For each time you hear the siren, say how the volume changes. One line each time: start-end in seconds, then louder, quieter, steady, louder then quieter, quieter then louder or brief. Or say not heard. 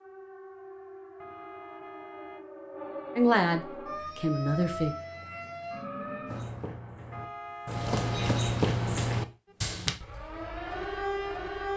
0.0-6.5 louder
9.4-11.7 brief.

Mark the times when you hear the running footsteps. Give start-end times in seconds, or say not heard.
6.2-10.0.